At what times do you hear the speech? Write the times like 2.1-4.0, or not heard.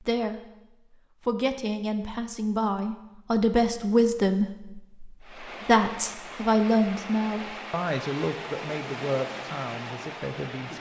0.0-0.5, 1.2-10.7.